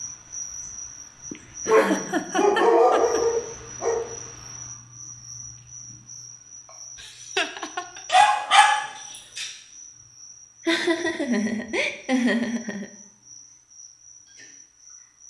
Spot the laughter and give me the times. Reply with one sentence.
You can hear the laughter from 1.3 to 3.2 s, from 7.0 to 8.0 s and from 10.7 to 12.9 s.